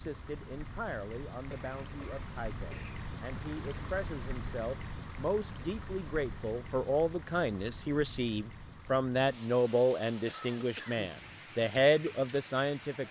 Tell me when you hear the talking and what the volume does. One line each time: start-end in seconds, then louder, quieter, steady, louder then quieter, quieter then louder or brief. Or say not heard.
0.0-13.0 louder.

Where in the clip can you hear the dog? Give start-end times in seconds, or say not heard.
not heard.